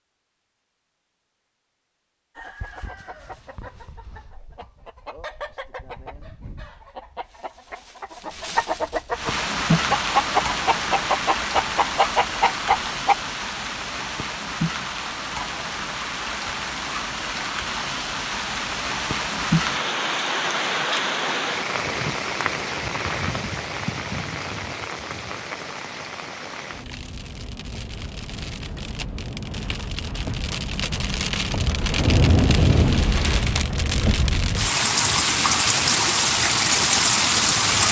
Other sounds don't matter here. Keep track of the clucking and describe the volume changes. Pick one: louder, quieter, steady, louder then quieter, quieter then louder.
louder.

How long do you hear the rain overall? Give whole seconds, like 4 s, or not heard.
29 s.